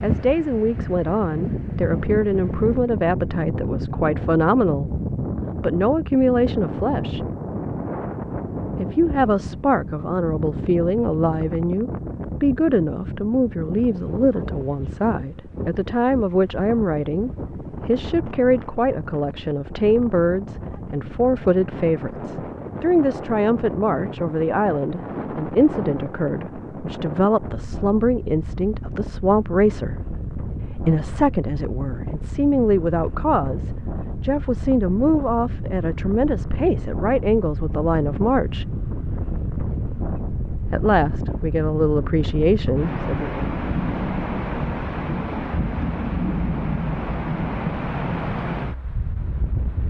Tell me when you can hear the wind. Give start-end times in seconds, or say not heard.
0.0-49.8.